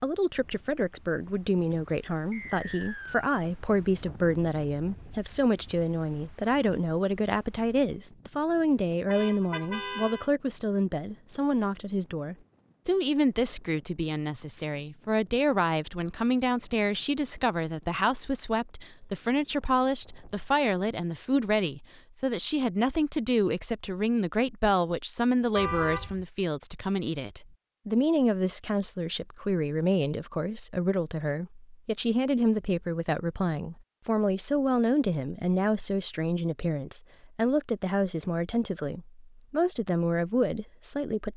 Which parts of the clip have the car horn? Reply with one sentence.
You can hear the car horn from 9.1 to 10.3 s and from 25.6 to 26.2 s.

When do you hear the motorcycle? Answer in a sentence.
You can't hear the motorcycle here.